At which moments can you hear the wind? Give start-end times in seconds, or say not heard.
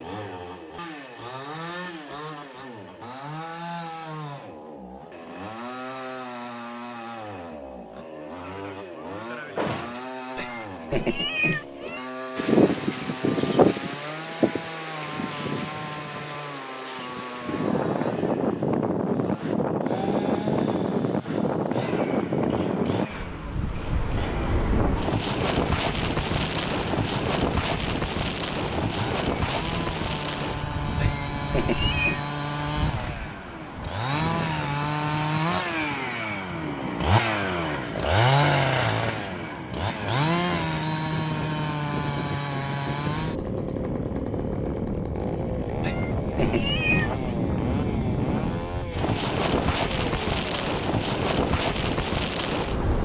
12.3-52.9.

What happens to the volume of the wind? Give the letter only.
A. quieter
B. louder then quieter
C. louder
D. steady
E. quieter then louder
E.